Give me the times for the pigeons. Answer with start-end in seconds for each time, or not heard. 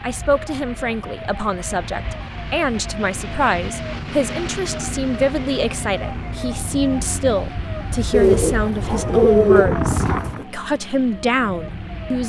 8.1-10.4.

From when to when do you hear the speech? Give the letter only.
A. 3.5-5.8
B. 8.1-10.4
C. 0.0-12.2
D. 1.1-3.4
C.